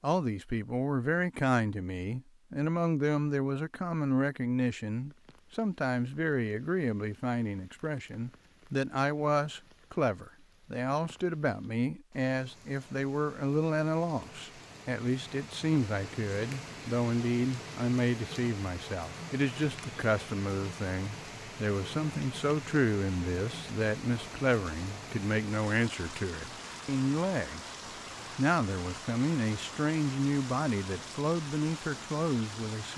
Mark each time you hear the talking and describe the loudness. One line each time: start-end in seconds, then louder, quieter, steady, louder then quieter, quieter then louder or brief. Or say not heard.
0.0-27.8 steady
28.4-32.9 steady.